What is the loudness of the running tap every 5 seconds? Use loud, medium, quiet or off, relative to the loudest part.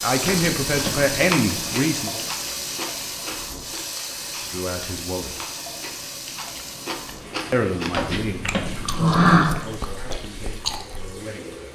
loud, medium, medium.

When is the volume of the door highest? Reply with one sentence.
The volume of the door peaks at 9 seconds.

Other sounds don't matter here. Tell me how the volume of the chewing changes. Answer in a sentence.
The volume of the chewing goes down, then up.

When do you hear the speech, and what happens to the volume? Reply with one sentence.
The speech can be heard briefly from 0.0 to 2.2 s; briefly from 4.5 to 5.4 s; and from 7.5 to 11.7 s, getting quieter.